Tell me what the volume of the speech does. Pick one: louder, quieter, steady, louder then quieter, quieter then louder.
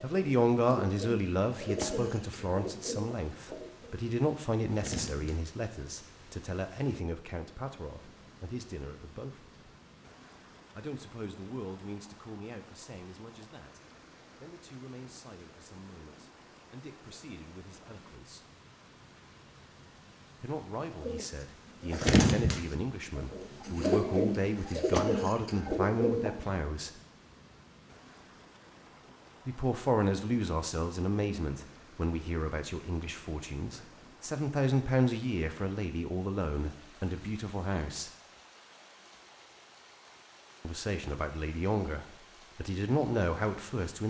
quieter then louder.